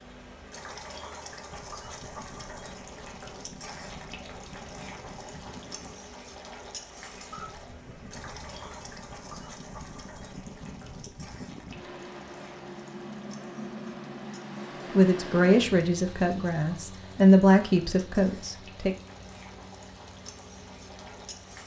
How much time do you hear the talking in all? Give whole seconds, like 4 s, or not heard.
4 s.